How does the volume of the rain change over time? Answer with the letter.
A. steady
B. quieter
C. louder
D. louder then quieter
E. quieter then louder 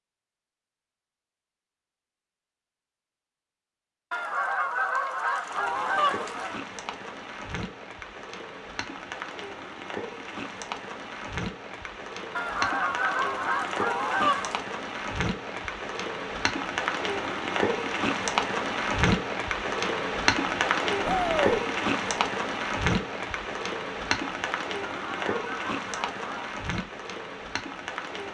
D.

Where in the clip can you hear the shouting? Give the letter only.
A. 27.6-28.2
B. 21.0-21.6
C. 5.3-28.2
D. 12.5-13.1
B.